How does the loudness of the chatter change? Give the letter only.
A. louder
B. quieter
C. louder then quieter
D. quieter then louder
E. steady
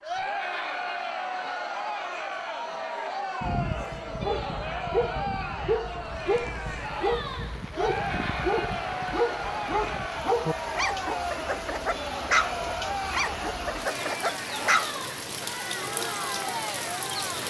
E.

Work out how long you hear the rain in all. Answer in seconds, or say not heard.
11 s.